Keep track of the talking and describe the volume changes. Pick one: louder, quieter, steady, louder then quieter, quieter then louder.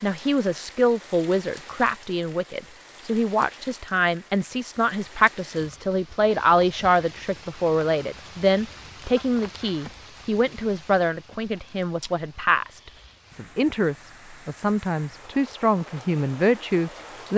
steady.